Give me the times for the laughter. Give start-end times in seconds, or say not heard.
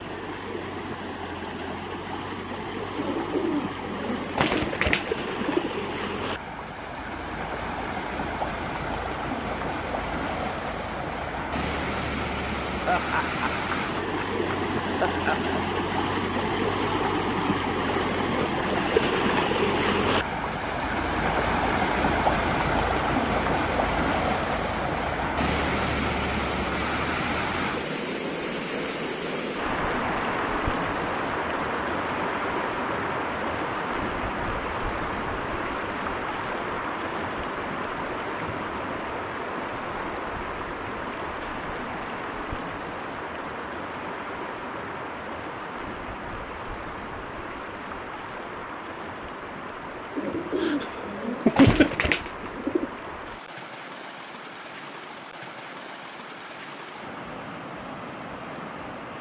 12.8-15.4, 50.5-51.9.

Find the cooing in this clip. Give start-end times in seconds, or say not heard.
3.0-5.7, 50.1-52.9.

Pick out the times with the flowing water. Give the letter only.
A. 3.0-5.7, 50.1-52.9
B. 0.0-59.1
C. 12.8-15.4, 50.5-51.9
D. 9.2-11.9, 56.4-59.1
B.